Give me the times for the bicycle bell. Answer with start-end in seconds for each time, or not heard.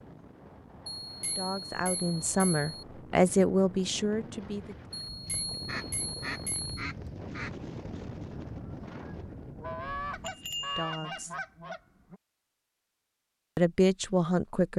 1.0-2.7, 5.1-6.8, 10.2-11.2.